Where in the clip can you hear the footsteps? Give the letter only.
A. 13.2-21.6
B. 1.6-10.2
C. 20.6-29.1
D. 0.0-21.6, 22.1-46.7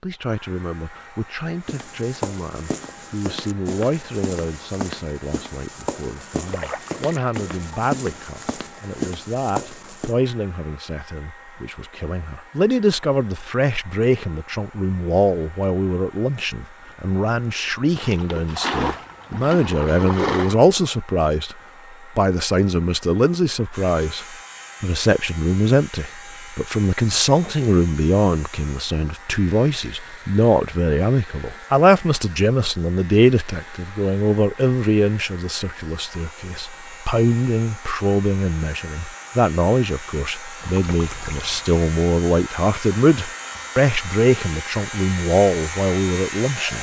B.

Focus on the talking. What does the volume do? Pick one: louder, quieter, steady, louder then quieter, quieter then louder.
louder.